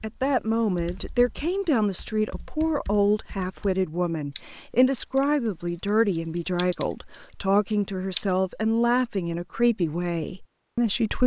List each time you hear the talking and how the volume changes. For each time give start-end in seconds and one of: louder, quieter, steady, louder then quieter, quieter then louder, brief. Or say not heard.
0.0-11.2 steady.